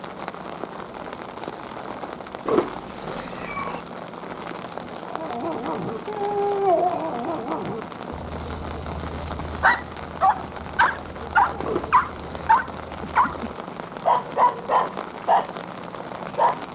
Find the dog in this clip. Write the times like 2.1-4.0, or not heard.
5.1-16.6.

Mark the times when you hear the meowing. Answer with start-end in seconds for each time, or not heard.
2.5-3.8, 11.6-12.6.